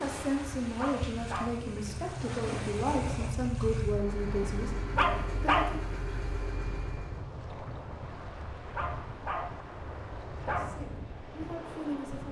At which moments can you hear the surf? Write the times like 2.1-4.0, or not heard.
0.0-12.2.